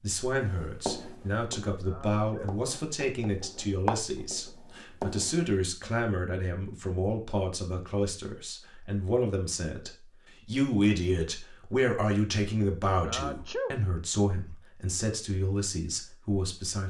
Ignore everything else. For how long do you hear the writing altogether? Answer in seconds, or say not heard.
5 s.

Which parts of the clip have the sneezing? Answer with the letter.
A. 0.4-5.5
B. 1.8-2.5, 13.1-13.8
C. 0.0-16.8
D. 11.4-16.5
B.